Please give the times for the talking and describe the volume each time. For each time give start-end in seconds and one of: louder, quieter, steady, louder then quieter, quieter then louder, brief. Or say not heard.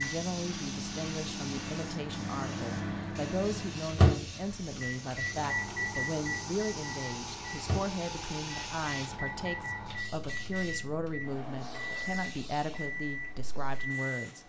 0.0-14.4 steady.